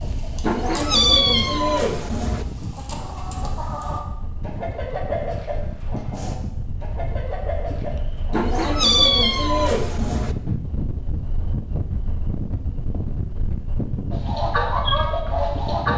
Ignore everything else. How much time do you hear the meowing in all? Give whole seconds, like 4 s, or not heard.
4 s.